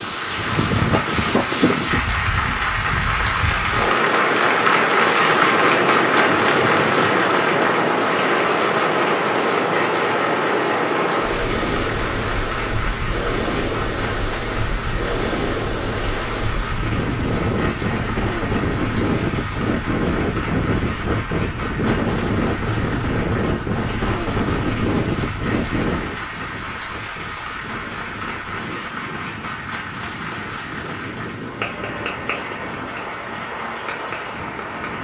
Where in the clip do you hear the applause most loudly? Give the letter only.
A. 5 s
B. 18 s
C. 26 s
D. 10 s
A.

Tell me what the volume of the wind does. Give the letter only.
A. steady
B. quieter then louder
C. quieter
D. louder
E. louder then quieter
C.